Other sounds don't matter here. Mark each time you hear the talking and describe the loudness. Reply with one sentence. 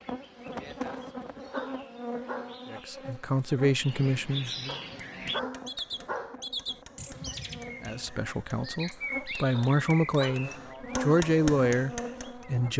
You can hear the talking briefly from 2.7 to 4.8 s; and from 7.8 to 12.7 s, getting louder.